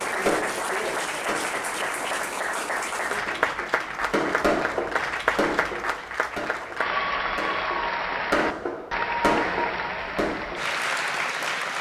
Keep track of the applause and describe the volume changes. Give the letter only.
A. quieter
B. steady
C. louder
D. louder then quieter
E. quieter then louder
B.